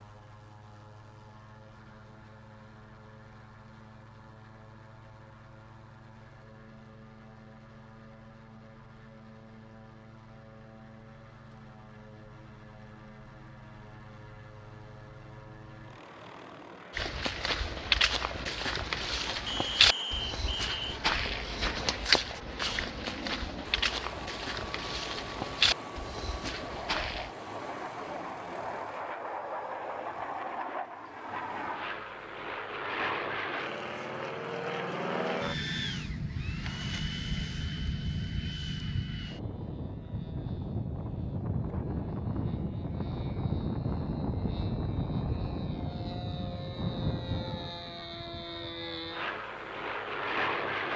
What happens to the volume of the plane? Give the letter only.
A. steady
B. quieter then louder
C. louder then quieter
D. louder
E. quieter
D.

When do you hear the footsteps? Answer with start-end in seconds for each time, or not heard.
16.9-27.3.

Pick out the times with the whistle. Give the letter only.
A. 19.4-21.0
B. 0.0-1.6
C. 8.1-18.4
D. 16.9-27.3
A.